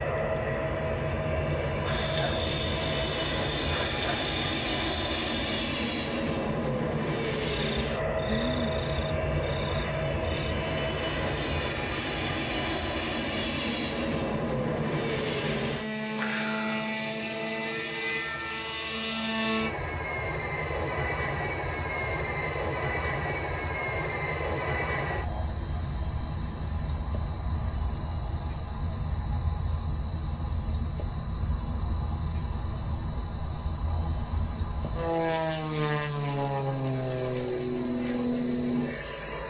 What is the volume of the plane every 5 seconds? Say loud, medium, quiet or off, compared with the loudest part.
loud, loud, loud, loud, loud, medium, medium, loud.